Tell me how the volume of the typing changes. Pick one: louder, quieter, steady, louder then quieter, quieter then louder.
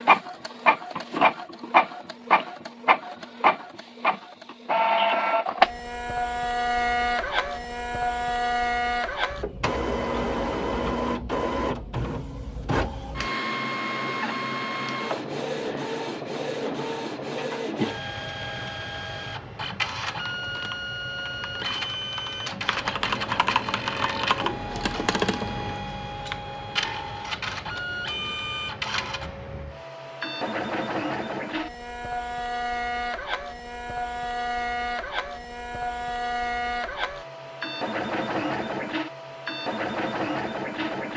louder.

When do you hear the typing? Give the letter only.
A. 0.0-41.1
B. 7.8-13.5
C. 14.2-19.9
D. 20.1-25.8
D.